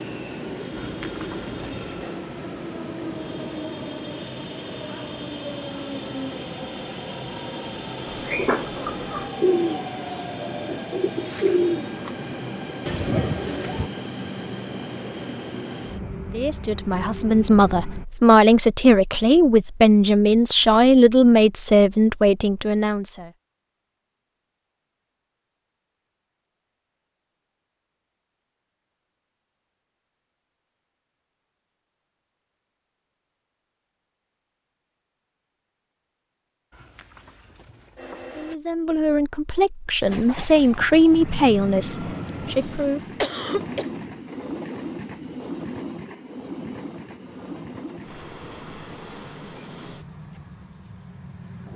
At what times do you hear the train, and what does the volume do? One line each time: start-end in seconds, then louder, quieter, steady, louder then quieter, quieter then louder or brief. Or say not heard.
0.0-18.1 steady
40.0-51.7 quieter.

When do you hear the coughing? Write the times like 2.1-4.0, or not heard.
43.2-43.9.